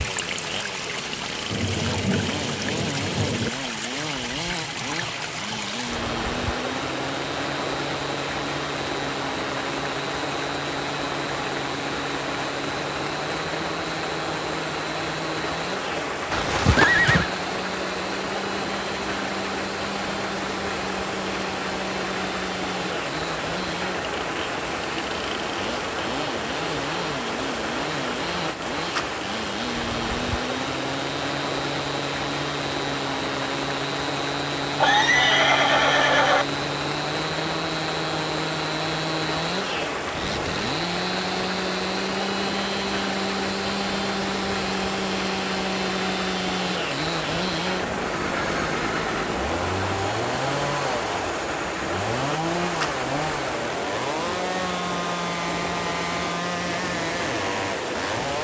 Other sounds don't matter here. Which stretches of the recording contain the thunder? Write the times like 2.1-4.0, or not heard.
1.5-3.5.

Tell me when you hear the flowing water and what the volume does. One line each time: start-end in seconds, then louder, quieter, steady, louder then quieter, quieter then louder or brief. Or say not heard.
0.0-58.4 steady.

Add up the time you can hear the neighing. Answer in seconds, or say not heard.
4 s.